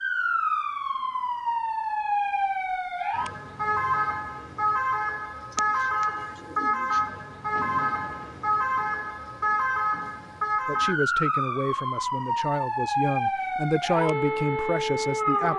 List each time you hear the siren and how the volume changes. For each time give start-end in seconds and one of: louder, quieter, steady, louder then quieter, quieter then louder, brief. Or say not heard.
0.0-15.5 steady.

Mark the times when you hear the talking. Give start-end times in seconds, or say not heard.
10.7-15.5.